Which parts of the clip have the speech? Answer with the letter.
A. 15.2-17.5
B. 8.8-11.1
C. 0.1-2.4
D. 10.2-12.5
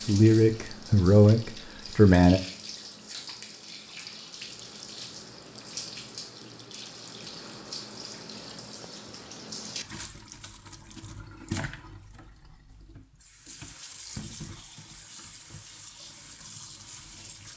C.